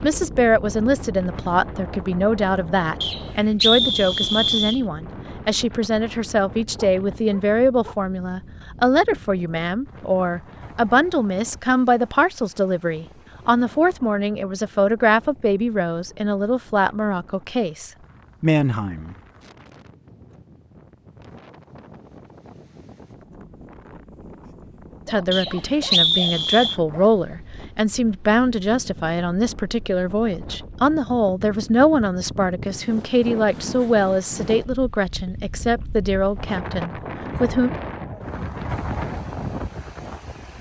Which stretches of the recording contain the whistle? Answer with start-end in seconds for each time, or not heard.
3.0-4.8, 25.3-26.8.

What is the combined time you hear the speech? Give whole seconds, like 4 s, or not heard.
32 s.